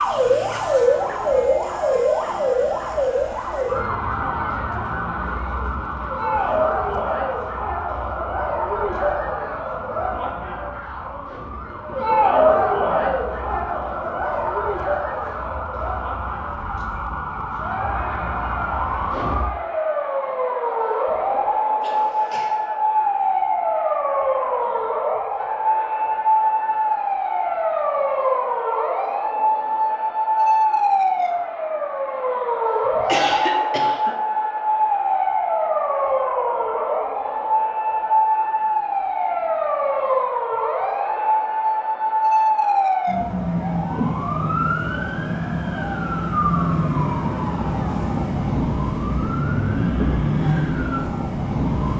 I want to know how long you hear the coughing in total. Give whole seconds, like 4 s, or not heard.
2 s.